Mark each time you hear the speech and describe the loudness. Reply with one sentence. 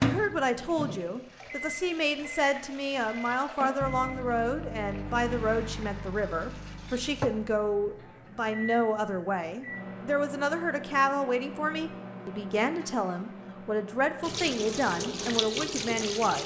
The speech can be heard from 0.0 to 16.4 s, at a steady volume.